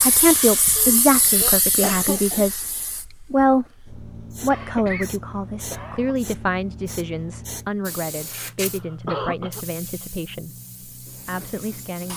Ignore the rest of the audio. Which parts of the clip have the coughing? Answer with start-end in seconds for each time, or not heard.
0.8-2.5, 4.5-6.2, 8.7-9.7.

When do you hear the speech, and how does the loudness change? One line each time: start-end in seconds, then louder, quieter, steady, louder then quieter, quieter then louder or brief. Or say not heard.
0.0-12.1 quieter.